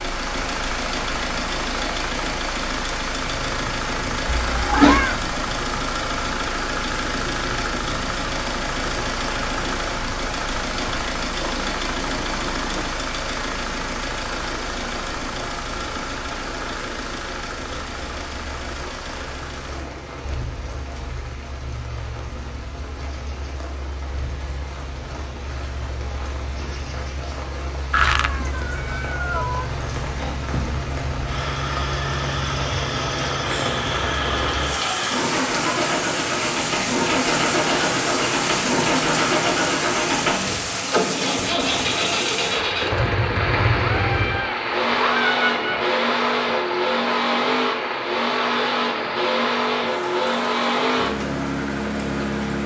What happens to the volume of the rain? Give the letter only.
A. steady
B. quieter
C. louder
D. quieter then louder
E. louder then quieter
C.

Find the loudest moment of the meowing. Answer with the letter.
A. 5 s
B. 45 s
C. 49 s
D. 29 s
A.